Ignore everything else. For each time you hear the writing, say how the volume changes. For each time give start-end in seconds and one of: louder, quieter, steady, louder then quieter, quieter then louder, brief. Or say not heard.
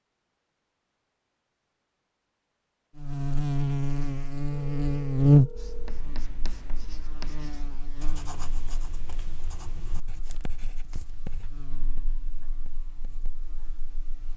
5.5-13.3 quieter.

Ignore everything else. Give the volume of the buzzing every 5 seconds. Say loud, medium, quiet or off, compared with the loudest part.
loud, loud, quiet.